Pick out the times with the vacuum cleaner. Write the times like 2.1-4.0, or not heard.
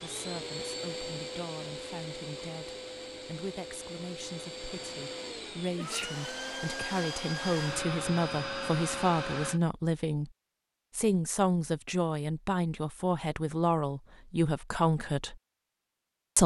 0.0-9.6.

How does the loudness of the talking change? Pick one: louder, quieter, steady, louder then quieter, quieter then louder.
louder.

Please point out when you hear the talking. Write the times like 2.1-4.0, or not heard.
0.0-10.3, 10.9-15.3.